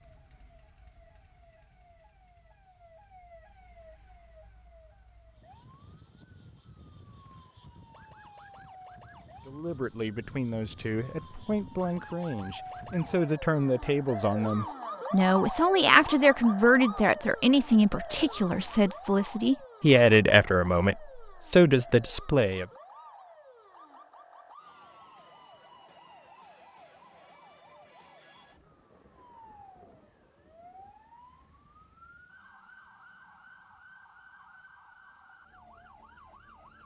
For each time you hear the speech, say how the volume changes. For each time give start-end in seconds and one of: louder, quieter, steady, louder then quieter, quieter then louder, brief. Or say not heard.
9.4-22.6 louder.